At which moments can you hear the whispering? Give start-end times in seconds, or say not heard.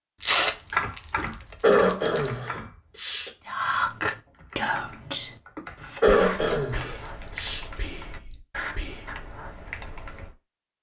3.5-9.2.